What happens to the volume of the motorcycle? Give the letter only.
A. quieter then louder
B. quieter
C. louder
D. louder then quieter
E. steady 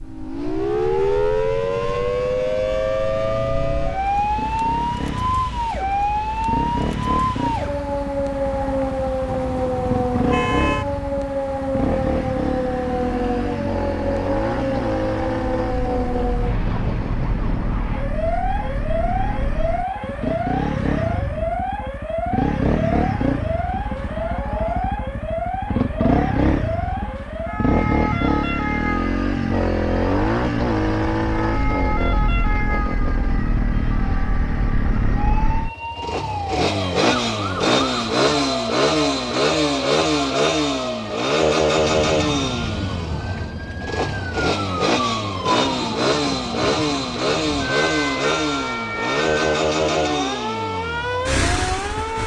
C.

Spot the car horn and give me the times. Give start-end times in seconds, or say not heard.
9.2-10.8.